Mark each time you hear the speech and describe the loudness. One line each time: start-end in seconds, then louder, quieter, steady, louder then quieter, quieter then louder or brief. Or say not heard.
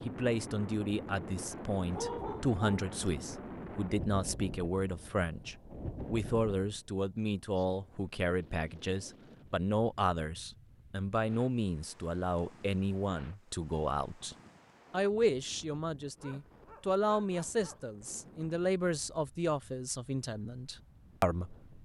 0.1-21.8 steady.